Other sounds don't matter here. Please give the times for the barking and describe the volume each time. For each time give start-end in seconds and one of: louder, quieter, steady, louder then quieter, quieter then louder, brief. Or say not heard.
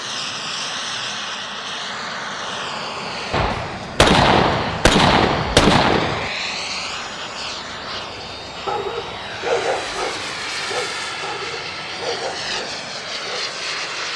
8.7-13.6 quieter.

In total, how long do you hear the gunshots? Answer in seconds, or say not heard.
3 s.